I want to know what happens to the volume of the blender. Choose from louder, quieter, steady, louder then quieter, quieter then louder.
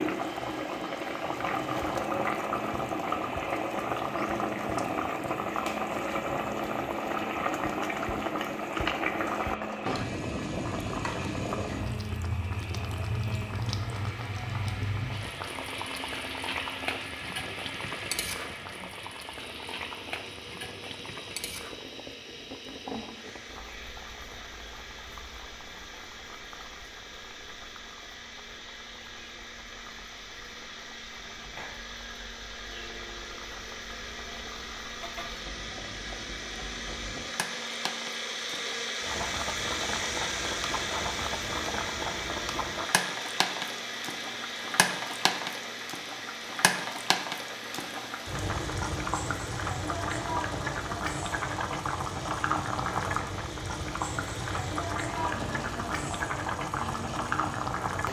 louder then quieter.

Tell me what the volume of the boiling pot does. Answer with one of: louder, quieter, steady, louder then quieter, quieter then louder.
quieter then louder.